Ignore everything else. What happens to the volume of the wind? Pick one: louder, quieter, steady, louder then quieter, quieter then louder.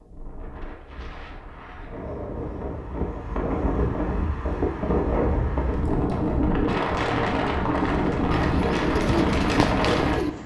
louder.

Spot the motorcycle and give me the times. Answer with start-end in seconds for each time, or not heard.
not heard.